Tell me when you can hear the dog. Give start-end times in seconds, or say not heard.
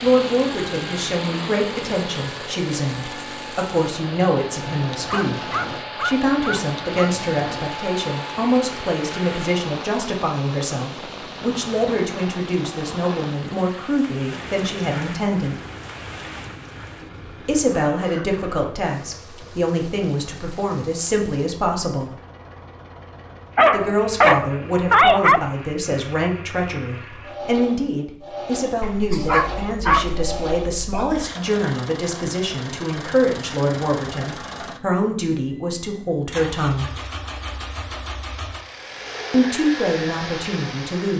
5.0-7.2, 23.6-25.4, 28.8-31.2.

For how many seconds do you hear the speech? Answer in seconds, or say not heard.
35 s.